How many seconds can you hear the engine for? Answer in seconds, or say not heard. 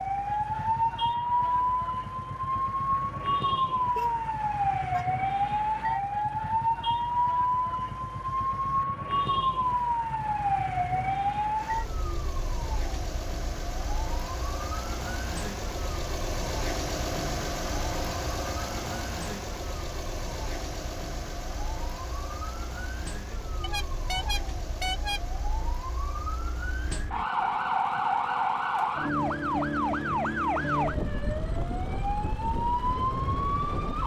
34 s.